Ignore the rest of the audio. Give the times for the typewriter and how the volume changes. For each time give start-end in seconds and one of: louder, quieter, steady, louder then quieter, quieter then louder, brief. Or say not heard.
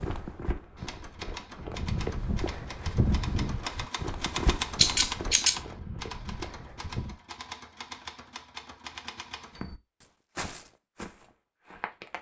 0.8-9.8 louder then quieter.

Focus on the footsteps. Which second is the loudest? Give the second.
3 s.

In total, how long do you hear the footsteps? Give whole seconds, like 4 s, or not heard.
10 s.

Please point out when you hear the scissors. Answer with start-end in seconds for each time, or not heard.
4.8-5.6.